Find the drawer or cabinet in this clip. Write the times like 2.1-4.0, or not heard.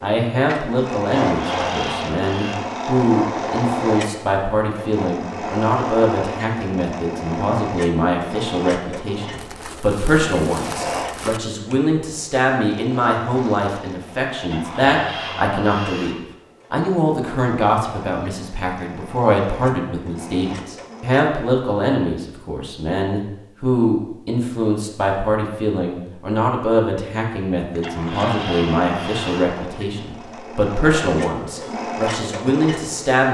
1.2-2.6, 14.5-16.2, 27.8-29.6.